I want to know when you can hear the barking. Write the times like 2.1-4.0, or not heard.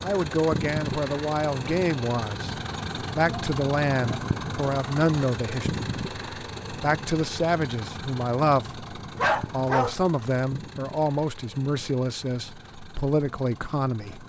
9.2-9.9.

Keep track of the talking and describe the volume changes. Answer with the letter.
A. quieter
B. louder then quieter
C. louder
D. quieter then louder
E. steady
E.